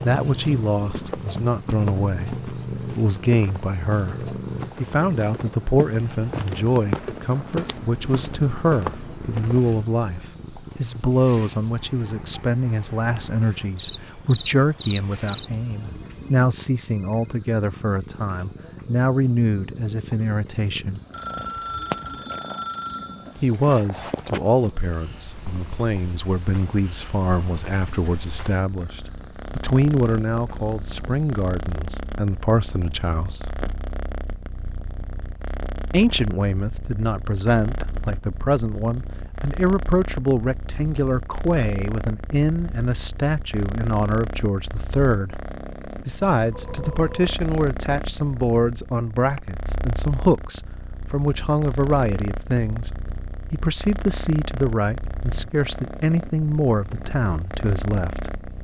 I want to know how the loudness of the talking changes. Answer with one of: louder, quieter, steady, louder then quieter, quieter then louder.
steady.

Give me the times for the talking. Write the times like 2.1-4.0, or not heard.
0.0-21.0, 23.4-33.5, 35.9-45.4, 46.0-52.9, 53.5-58.3.